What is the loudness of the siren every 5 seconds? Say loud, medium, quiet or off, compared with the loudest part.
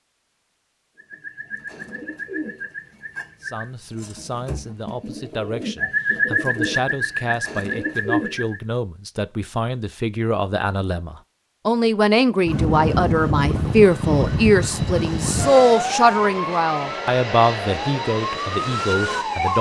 off, off, loud, loud.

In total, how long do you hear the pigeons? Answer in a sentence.
The pigeons can be heard for 8 seconds in total.